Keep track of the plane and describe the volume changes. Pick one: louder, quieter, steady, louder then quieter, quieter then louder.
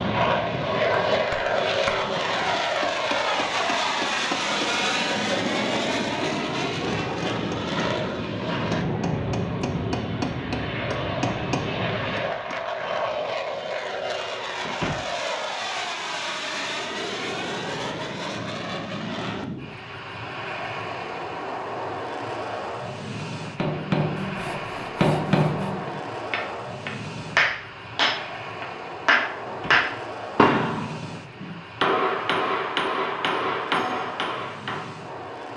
quieter.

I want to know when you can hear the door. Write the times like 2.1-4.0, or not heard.
14.6-15.1, 29.4-29.9.